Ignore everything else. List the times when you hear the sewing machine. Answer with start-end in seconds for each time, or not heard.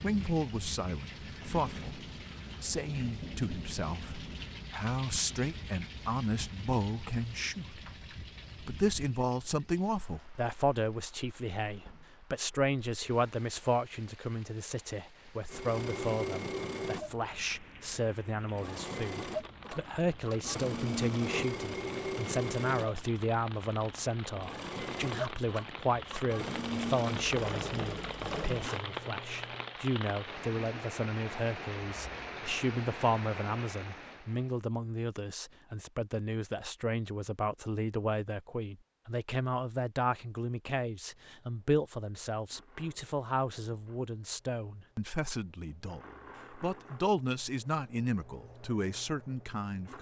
15.5-29.8, 41.2-49.9.